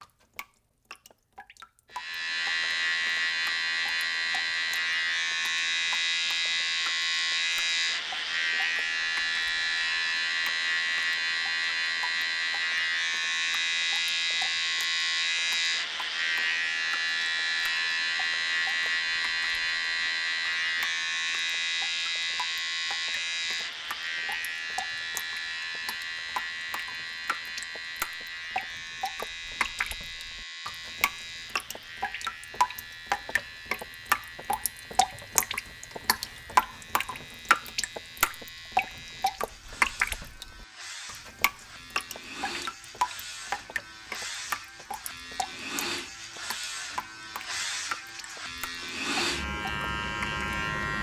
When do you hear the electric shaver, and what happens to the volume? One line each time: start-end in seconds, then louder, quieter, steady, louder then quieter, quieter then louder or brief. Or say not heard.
1.9-50.9 quieter then louder.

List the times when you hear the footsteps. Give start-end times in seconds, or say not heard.
not heard.